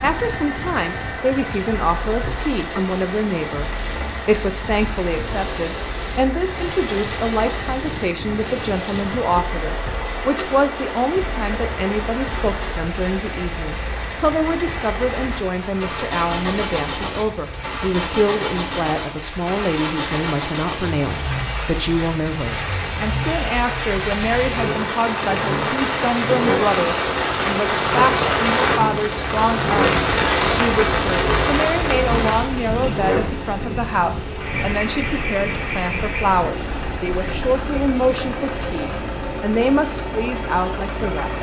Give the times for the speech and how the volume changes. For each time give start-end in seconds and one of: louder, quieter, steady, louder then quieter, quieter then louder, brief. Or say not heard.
0.0-41.3 steady.